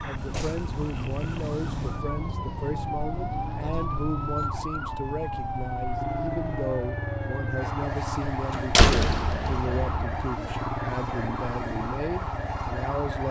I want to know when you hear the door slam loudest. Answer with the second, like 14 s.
9 s.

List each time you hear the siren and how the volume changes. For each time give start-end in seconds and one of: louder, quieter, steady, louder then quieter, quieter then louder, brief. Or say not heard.
0.0-13.2 steady.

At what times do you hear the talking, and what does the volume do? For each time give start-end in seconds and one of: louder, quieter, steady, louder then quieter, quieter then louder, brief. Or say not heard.
0.0-13.2 steady.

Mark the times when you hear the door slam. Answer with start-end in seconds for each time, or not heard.
0.1-0.7, 8.3-10.3.